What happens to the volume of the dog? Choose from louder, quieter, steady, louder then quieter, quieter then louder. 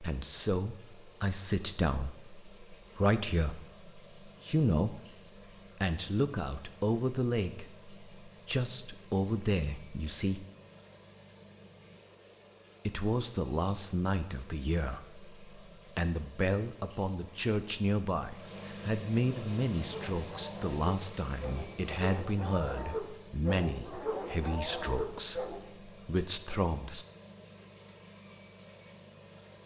louder.